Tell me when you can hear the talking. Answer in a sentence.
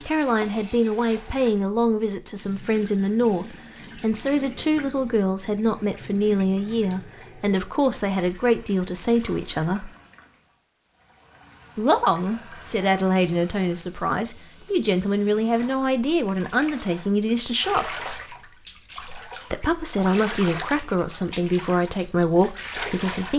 The talking can be heard from 0.1 to 9.9 s, from 11.8 to 17.9 s and from 19.5 to 23.3 s.